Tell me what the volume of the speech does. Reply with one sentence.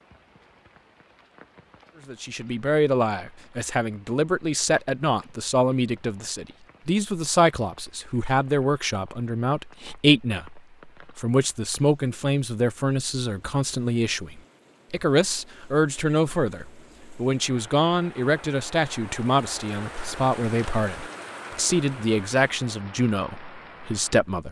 The volume of the speech stays about the same.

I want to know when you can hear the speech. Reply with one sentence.
You can hear the speech from 2.0 to 24.4 s.